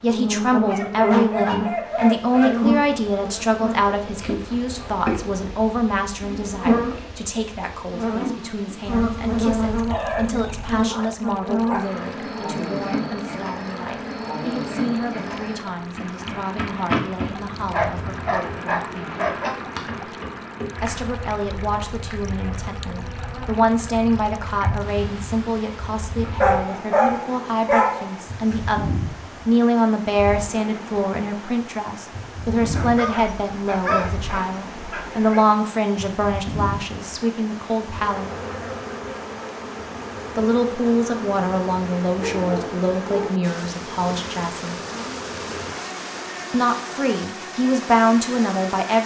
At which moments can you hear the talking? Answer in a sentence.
The talking can be heard from 0.0 to 19.2 s, from 20.8 to 38.4 s, from 40.4 to 44.8 s and from 46.5 to 49.0 s.